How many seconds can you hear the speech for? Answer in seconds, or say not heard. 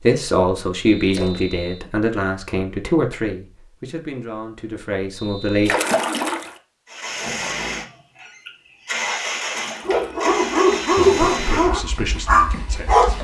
8 s.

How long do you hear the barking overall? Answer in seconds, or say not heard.
3 s.